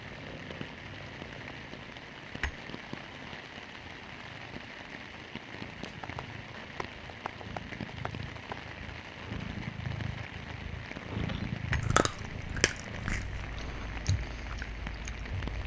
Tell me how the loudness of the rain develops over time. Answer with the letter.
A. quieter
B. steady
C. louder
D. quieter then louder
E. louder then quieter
B.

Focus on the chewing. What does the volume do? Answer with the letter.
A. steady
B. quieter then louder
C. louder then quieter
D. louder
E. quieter
E.